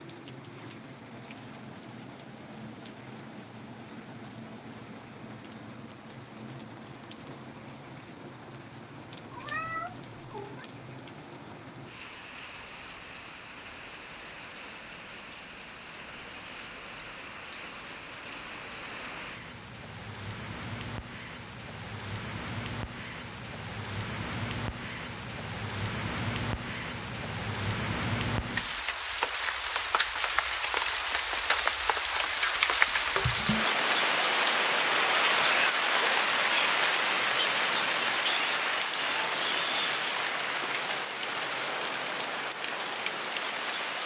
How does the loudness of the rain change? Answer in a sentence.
The loudness of the rain goes up.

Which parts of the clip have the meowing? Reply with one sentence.
You can hear the meowing from 9.3 to 10.7 s.